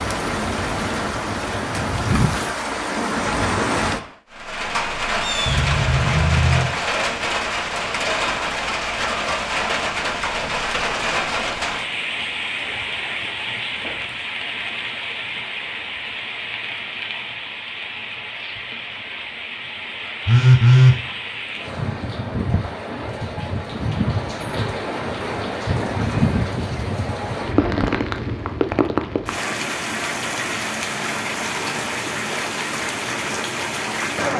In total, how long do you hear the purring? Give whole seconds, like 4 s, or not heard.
not heard.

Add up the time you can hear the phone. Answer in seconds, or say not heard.
2 s.